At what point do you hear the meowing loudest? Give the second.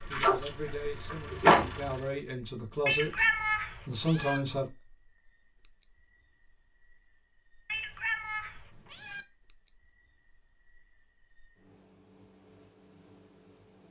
3 s.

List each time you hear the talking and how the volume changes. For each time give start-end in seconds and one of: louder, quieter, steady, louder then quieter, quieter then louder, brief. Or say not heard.
0.1-4.7 louder.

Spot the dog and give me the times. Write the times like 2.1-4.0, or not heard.
0.1-0.5, 1.1-1.6.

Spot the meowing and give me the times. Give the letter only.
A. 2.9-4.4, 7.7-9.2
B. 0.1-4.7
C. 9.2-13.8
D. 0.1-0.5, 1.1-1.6
A.